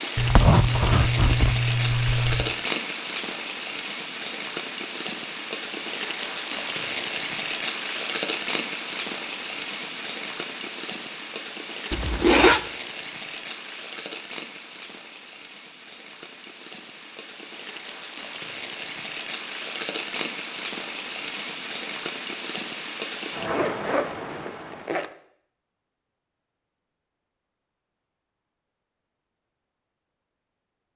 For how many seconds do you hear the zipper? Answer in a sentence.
You can hear the zipper for 5 seconds altogether.